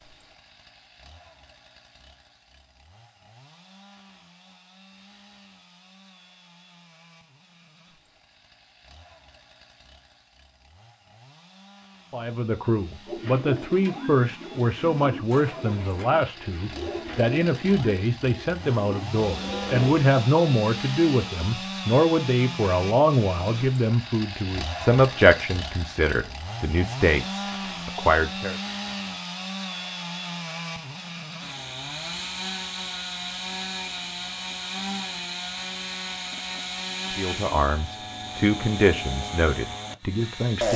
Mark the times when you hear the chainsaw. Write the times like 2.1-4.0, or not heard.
0.0-40.7.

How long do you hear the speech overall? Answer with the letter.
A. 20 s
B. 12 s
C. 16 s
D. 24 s
A.